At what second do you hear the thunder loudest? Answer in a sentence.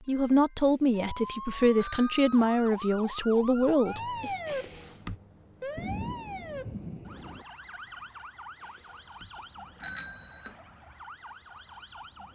The volume of the thunder peaks at 6 seconds.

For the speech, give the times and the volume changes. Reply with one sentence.
The speech can be heard from 0.1 to 4.3 s, at a steady volume.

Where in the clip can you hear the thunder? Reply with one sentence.
You can hear the thunder from 5.8 to 7.5 s.